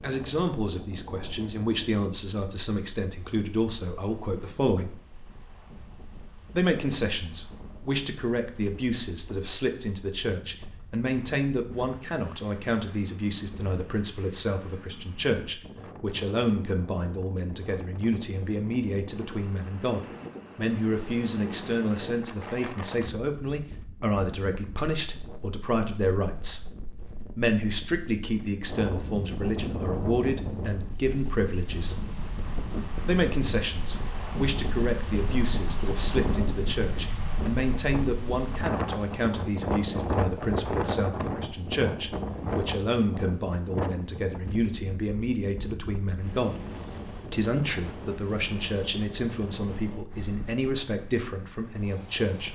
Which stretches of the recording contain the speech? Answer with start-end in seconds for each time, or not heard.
0.0-5.0, 6.5-26.6, 27.2-31.9, 33.0-46.5, 47.2-52.4.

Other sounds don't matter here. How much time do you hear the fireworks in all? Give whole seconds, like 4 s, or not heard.
not heard.